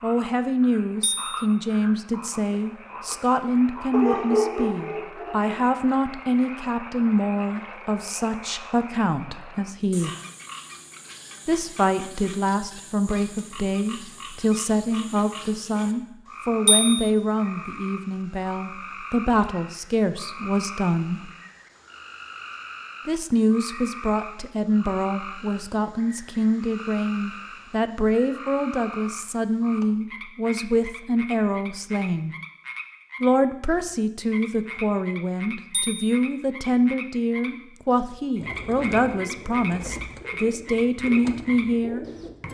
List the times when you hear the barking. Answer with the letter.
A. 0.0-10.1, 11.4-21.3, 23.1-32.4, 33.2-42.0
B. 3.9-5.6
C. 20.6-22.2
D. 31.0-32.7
B.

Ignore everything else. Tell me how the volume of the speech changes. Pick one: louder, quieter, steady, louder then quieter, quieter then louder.
steady.